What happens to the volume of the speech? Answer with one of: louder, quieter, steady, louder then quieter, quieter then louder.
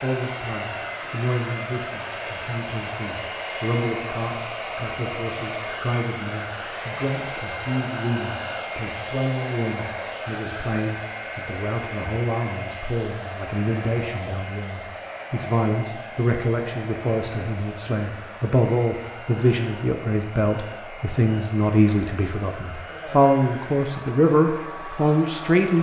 louder.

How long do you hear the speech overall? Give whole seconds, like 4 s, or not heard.
26 s.